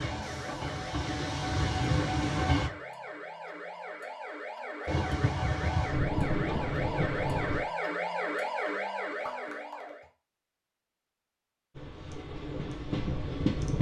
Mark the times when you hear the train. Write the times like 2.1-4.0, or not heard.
0.0-2.7, 4.8-7.7, 11.8-13.7.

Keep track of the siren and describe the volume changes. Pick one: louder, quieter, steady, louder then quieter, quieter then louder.
louder.